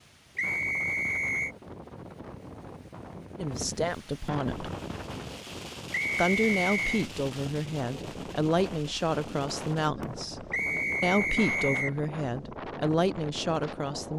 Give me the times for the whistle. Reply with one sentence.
The whistle can be heard from 0.3 to 1.6 s, from 5.9 to 7.0 s and from 10.5 to 11.9 s.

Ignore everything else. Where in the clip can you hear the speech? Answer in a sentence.
You can hear the speech from 3.4 to 4.7 s and from 6.2 to 14.1 s.